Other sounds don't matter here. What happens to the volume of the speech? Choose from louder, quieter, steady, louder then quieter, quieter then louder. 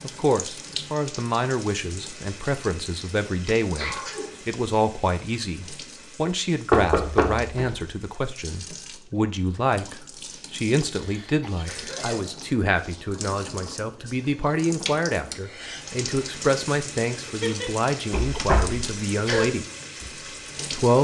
steady.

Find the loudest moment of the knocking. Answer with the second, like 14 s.
7 s.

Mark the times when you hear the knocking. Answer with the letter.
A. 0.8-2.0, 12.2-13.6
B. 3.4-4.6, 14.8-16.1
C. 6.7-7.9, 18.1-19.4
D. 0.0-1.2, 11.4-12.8
C.